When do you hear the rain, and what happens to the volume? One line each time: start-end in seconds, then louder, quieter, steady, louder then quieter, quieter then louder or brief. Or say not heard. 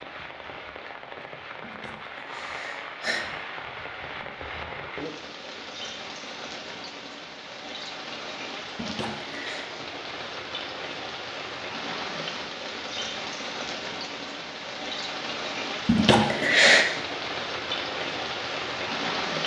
0.0-19.4 louder.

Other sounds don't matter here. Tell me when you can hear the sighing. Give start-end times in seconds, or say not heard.
1.6-3.2, 8.8-9.7, 15.8-16.9.